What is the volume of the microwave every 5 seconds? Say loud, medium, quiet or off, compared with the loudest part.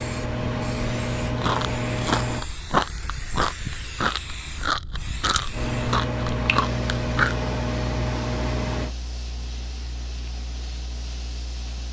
loud, loud, off.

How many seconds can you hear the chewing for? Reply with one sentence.
The chewing can be heard for 6 seconds in total.